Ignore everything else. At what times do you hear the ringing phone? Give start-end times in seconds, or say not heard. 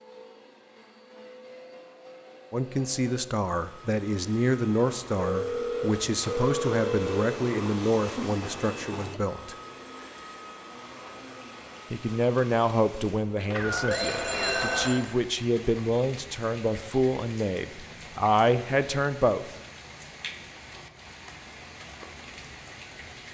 5.2-7.2, 13.4-15.0.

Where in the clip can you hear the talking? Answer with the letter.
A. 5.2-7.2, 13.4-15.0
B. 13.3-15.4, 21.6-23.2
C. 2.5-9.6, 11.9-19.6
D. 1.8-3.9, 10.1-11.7
C.